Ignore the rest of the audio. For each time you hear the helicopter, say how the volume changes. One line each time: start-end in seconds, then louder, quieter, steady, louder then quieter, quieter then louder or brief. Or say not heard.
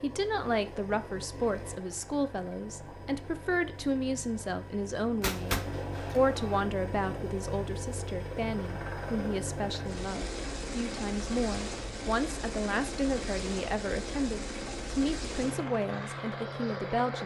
0.0-17.2 louder.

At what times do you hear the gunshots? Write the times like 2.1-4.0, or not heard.
5.2-6.7.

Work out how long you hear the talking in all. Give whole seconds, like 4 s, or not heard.
17 s.